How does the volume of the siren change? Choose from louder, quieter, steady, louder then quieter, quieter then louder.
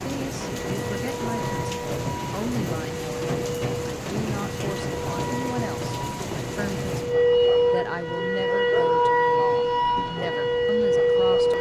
louder.